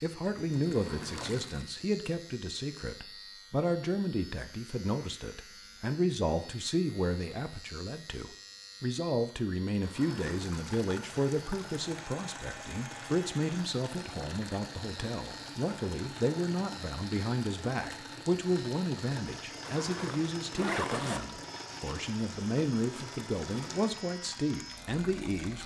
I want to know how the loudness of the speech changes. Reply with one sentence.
The volume of the speech stays about the same.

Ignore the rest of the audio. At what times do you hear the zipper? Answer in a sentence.
The zipper can be heard from 0.7 to 1.4 s, from 9.8 to 10.4 s and from 19.6 to 21.2 s.